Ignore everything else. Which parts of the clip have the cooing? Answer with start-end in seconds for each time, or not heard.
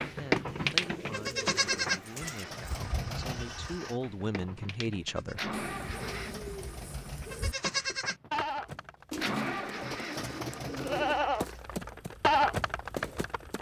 0.5-2.5, 5.5-7.5, 9.1-11.2.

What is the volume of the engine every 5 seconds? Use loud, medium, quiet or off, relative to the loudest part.
loud, loud, medium.